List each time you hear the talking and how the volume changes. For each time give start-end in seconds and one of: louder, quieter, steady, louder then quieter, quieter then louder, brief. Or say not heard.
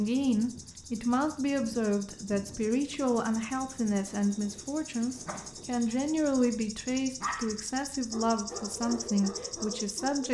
0.0-10.2 steady.